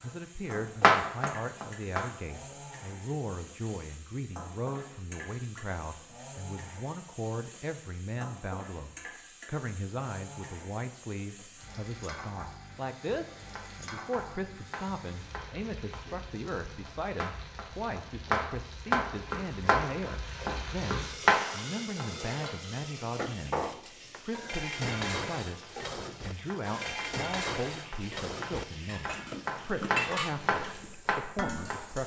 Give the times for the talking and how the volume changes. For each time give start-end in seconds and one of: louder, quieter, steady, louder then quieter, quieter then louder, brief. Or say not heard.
0.0-32.0 steady.